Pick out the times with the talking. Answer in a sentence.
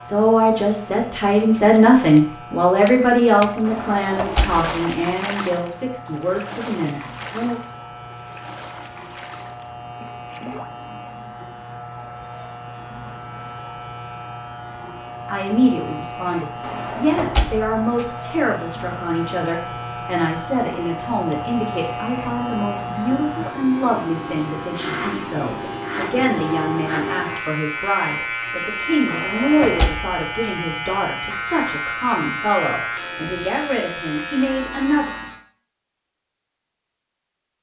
You can hear the talking from 0.0 to 7.6 s and from 15.2 to 35.1 s.